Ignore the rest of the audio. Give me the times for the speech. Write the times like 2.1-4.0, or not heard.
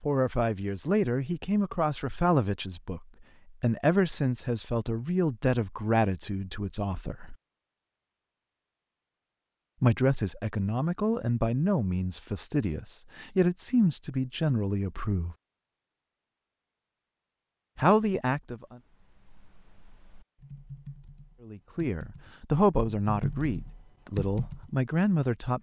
0.0-7.3, 9.8-15.3, 17.8-18.8, 21.4-25.5.